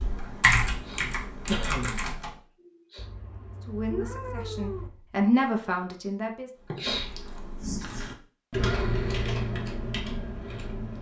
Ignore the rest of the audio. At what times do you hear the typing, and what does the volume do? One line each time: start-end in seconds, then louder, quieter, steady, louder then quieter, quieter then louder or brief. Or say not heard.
0.0-2.4 brief
6.7-10.9 louder then quieter.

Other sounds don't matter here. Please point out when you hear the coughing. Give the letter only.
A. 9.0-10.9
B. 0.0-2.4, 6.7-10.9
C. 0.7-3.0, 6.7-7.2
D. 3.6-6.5
C.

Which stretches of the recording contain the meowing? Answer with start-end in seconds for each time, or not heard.
3.0-4.9.